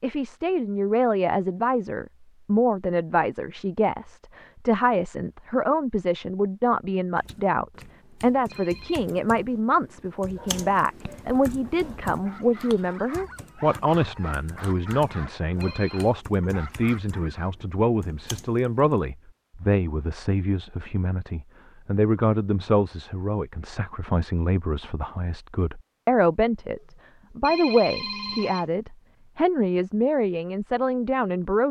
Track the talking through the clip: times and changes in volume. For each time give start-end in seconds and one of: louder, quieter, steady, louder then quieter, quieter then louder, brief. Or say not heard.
0.0-31.6 steady.